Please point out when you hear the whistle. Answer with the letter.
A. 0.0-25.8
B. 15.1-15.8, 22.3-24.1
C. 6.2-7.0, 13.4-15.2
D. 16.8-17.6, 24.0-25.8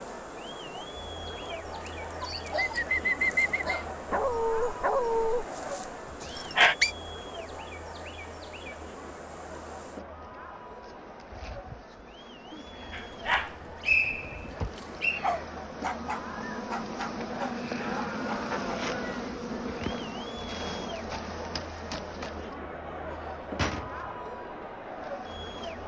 C.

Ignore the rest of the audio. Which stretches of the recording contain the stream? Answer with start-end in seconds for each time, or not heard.
not heard.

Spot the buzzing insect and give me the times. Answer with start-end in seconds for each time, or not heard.
0.0-25.8.